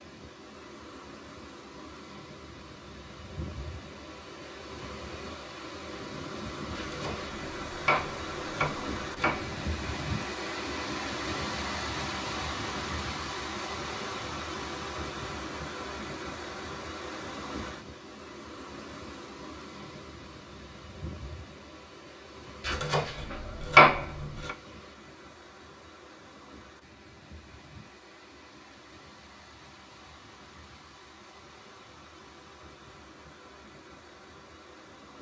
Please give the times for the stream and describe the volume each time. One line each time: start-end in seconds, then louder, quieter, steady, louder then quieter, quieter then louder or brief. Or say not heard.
0.0-35.1 louder then quieter.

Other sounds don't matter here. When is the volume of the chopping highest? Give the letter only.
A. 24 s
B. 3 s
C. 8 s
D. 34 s
A.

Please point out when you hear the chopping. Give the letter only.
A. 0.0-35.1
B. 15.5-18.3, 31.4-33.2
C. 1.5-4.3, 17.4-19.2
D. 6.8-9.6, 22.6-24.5
D.